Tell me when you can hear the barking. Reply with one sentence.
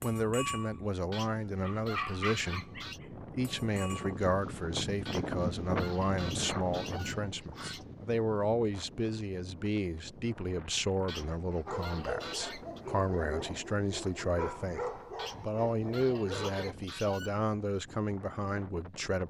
The barking can be heard from 0.0 to 0.8 s, from 1.6 to 4.2 s and from 11.7 to 16.8 s.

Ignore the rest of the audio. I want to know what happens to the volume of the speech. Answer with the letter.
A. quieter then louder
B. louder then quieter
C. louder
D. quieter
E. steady
E.